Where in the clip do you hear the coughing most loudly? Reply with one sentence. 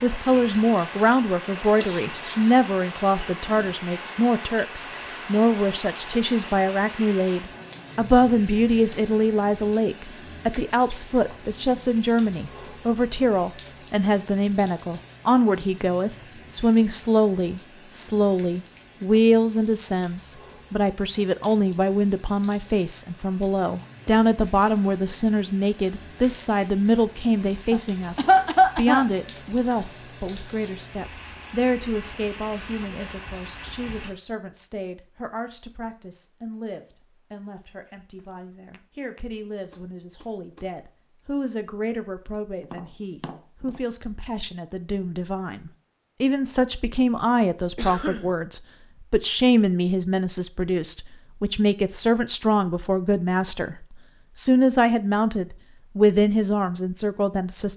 The loudest moment of the coughing is at 28 seconds.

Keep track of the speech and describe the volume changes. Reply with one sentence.
The loudness of the speech goes down, then up.